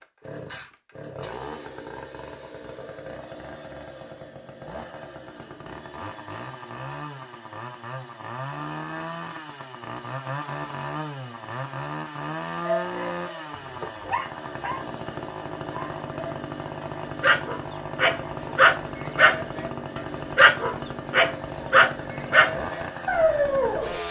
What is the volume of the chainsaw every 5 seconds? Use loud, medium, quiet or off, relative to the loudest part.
medium, loud, loud, loud, loud.